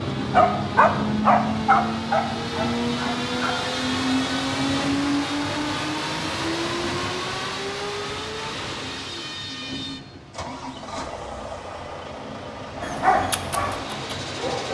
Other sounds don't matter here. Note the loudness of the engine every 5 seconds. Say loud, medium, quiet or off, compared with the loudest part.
loud, loud, medium.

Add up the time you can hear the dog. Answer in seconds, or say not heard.
5 s.